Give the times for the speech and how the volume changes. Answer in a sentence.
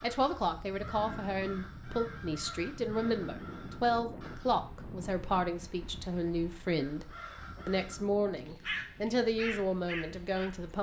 You can hear the speech from 0.0 to 10.7 s, at a steady volume.